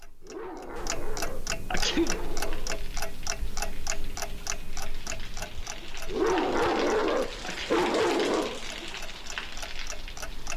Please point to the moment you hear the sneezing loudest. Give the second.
2 s.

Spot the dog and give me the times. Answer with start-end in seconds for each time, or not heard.
0.2-2.9, 6.0-8.6.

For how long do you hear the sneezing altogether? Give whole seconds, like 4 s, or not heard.
2 s.